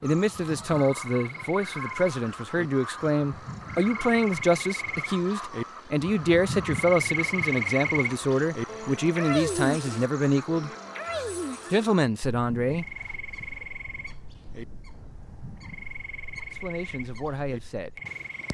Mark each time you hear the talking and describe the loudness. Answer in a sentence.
The talking can be heard from 0.0 to 10.7 s, at a steady volume; briefly from 11.7 to 12.8 s; and briefly from 16.5 to 17.9 s.